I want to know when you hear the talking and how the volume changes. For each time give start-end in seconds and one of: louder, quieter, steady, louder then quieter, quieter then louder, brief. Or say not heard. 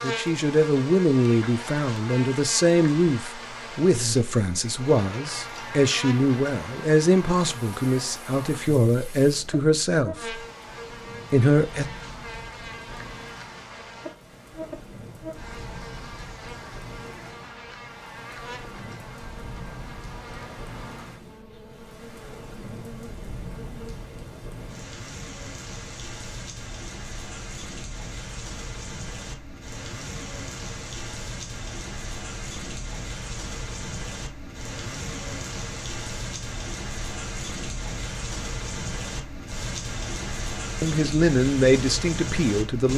0.0-10.3 steady
11.3-11.8 brief
40.8-42.9 brief.